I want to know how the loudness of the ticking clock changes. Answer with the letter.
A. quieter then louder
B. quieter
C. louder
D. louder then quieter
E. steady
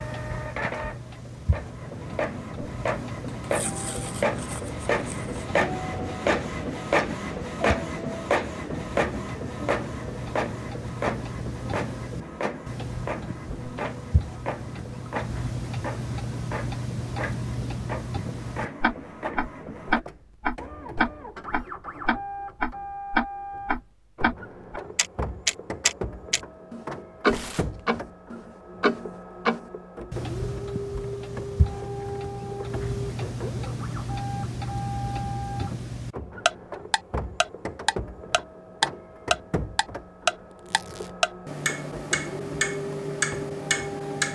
C.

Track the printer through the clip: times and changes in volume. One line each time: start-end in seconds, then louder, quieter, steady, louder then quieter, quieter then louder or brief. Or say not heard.
0.0-44.2 quieter.